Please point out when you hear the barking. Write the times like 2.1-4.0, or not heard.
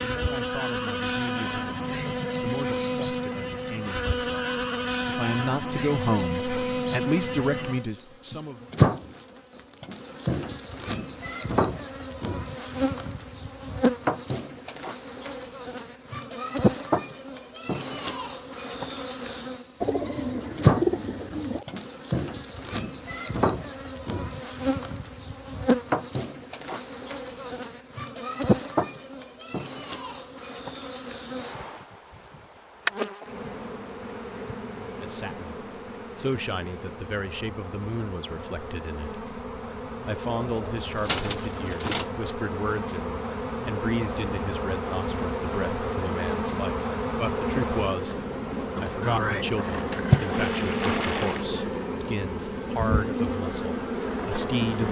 not heard.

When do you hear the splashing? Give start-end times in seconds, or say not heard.
49.9-51.5.